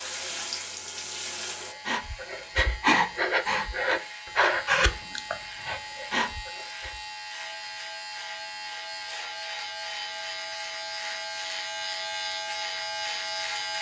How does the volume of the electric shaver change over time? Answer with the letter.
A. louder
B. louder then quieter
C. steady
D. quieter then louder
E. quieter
A.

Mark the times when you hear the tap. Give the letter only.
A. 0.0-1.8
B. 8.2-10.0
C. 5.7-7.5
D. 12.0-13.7
A.